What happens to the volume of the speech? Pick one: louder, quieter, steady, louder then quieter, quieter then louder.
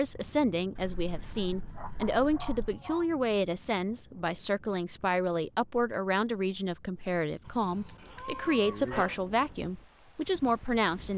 steady.